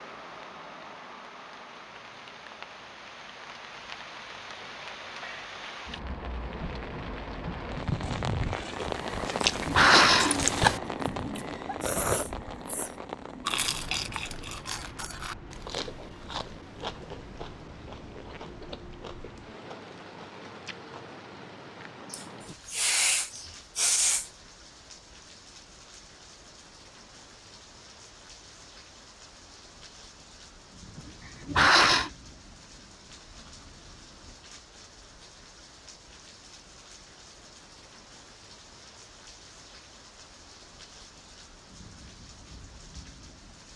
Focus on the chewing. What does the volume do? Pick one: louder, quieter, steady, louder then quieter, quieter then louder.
quieter.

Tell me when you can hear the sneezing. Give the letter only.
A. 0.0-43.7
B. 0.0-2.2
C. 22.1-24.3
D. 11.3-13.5
C.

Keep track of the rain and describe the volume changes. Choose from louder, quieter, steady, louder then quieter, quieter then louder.
quieter.